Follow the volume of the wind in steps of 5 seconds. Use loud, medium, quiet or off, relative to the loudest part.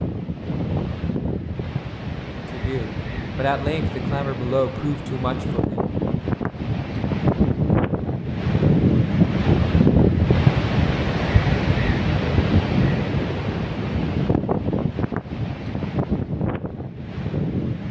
medium, loud, loud, medium.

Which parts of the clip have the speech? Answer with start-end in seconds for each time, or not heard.
2.4-5.7.